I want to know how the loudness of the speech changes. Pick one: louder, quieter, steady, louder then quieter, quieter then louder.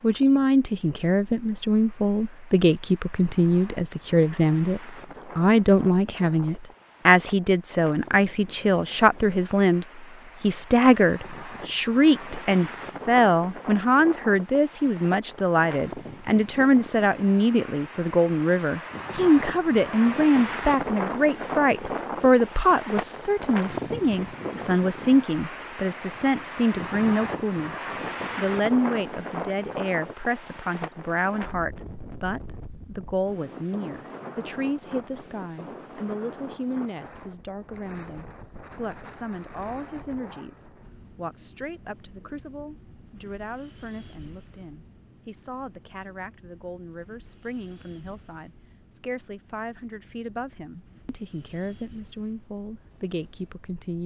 quieter.